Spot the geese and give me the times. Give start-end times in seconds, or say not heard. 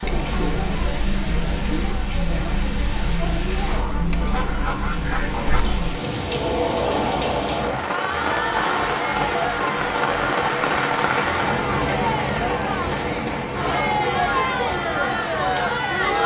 3.6-5.7.